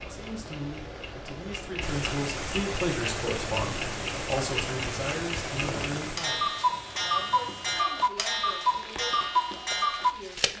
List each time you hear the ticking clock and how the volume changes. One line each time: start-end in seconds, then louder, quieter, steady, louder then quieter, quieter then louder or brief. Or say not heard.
0.0-10.5 louder.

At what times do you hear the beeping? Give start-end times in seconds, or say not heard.
not heard.